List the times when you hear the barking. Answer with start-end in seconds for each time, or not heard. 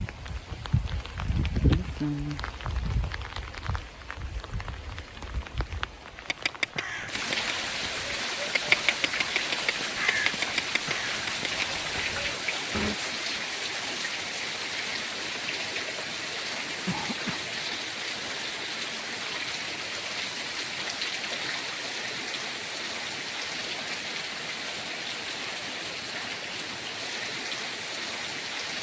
not heard.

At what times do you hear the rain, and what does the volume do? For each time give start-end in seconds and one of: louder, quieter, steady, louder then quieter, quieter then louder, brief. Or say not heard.
0.0-28.7 steady.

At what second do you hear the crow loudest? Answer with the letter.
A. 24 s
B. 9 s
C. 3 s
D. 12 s
B.